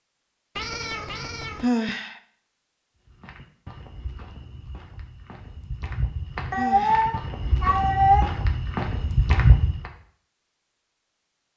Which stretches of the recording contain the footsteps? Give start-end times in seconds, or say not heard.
3.0-9.9.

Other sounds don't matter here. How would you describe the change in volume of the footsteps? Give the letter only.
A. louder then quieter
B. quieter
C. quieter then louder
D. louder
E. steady
D.